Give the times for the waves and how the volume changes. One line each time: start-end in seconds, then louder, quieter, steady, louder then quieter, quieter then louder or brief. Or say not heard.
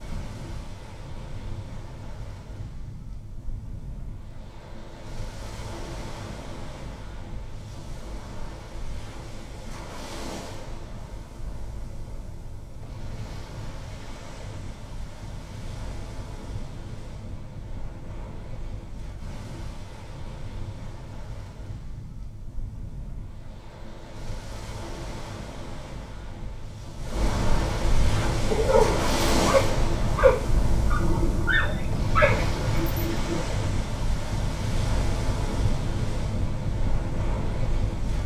0.0-38.2 louder.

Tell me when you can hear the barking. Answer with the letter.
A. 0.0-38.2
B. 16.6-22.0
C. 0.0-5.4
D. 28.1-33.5
D.